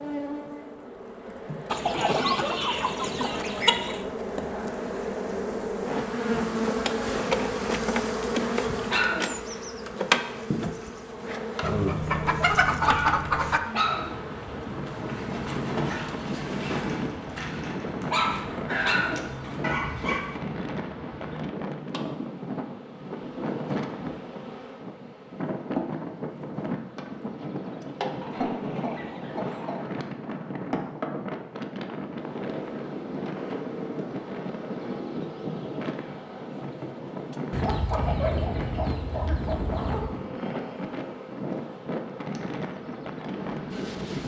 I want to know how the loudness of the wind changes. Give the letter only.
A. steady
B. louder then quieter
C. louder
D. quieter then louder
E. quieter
A.